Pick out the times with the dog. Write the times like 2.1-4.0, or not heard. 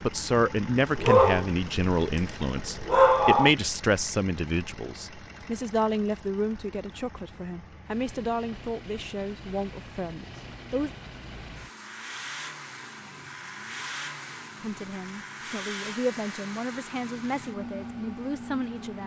0.9-3.5.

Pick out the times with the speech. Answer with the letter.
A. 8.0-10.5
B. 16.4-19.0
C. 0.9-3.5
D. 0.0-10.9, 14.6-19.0
D.